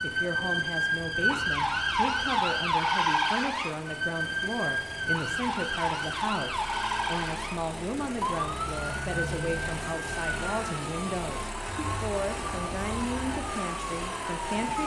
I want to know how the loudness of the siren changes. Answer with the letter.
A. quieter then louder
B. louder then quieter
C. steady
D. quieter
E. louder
D.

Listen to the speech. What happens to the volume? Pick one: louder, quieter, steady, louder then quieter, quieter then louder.
steady.